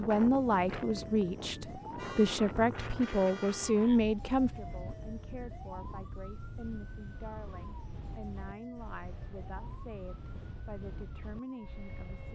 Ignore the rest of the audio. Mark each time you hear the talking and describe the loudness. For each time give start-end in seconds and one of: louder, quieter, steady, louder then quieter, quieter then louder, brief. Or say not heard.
0.0-12.3 quieter.